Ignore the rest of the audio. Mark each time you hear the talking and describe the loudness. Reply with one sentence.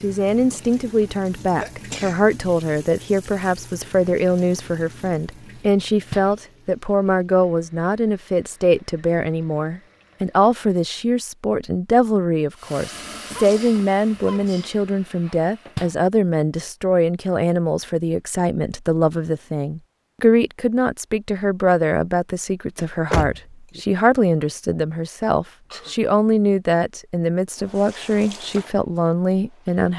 The talking can be heard from 0.0 to 29.9 s, at a steady volume.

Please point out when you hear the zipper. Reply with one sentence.
You can't hear the zipper here.